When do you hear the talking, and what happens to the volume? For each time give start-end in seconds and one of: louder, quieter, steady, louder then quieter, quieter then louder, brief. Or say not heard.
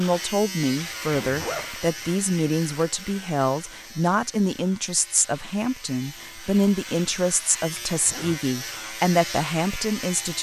0.0-10.3 steady.